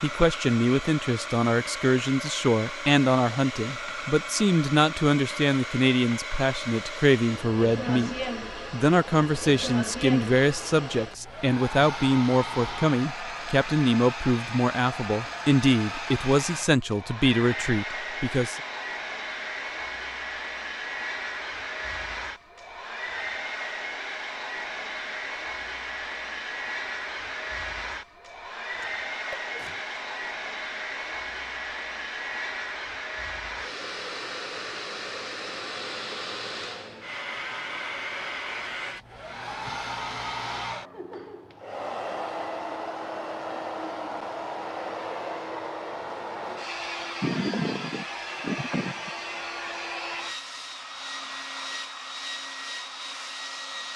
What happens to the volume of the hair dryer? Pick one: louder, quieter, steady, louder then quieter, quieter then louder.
steady.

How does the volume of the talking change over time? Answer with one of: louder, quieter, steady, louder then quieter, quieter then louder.
steady.